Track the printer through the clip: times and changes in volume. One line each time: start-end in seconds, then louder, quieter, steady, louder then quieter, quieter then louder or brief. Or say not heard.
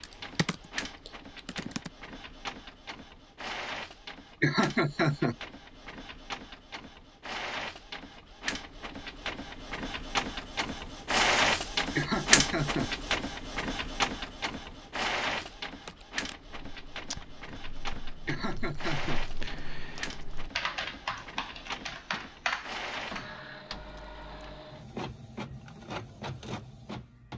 0.0-27.3 louder then quieter.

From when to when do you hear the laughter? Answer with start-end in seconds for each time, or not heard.
4.4-5.3, 11.9-12.9, 18.2-19.2.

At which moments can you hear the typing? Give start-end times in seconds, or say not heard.
0.0-1.9, 15.2-24.6.